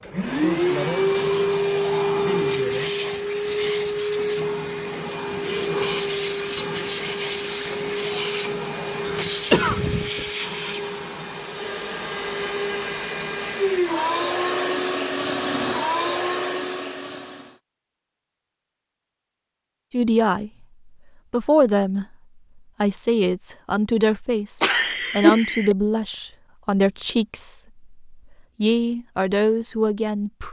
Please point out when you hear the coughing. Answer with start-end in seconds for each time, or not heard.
9.1-10.2, 24.6-25.8.